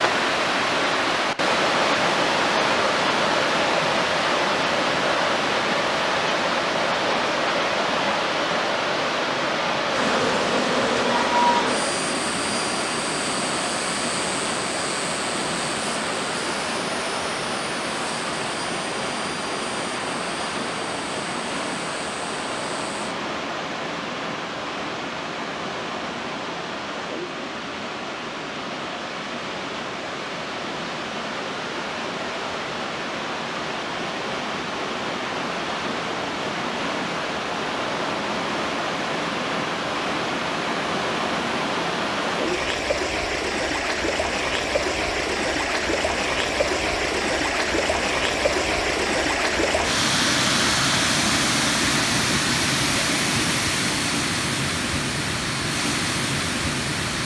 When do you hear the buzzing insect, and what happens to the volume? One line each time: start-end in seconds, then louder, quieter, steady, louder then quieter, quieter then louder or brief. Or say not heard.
9.9-22.9 quieter.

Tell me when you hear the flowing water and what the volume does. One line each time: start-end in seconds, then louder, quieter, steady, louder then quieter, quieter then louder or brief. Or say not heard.
0.0-57.2 quieter then louder.